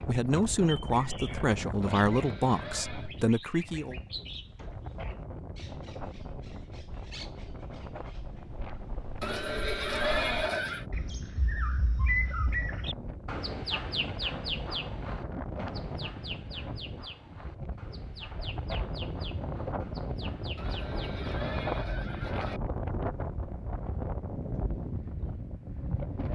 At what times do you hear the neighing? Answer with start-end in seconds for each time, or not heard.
1.8-3.1, 9.2-10.8, 20.6-22.6.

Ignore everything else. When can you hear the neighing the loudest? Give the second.
10 s.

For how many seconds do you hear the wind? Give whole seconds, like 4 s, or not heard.
26 s.